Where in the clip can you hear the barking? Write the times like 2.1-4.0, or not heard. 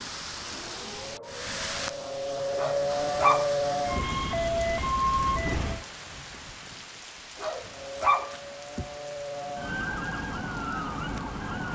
2.5-4.0, 7.3-8.8.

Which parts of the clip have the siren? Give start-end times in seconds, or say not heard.
0.1-5.8, 7.7-11.6.